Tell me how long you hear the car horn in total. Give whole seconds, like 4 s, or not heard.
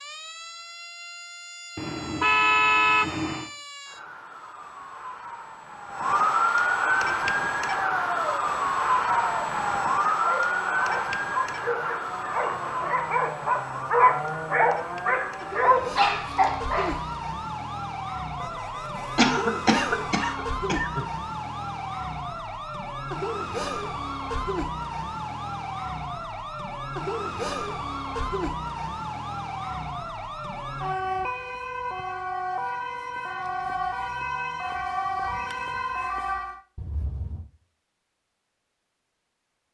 4 s.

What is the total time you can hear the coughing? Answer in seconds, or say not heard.
2 s.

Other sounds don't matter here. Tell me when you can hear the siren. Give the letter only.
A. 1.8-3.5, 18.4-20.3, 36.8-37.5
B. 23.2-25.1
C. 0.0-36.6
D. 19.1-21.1
C.